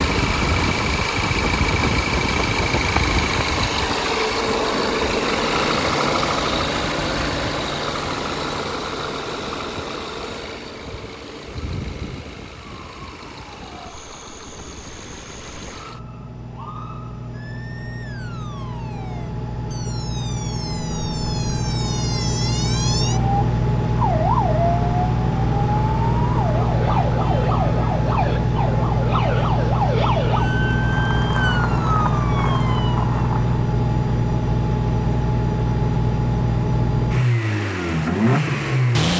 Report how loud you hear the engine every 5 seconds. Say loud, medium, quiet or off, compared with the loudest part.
loud, loud, quiet, quiet, loud, loud, loud, loud.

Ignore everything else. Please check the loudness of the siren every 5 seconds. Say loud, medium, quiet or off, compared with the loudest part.
off, off, quiet, quiet, loud, loud, loud, off.